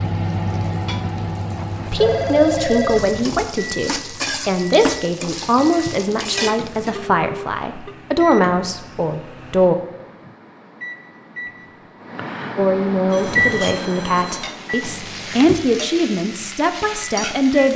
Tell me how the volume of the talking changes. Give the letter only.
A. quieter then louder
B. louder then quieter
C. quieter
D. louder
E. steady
E.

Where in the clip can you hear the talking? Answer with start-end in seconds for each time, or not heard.
1.9-9.8, 12.6-17.7.